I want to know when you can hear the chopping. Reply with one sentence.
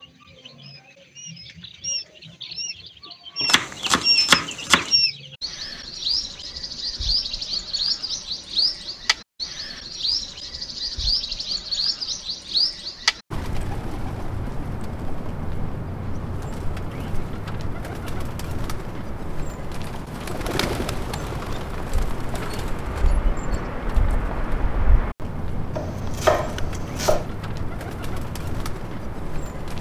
The chopping can be heard from 3.5 to 5.0 s and from 25.8 to 27.2 s.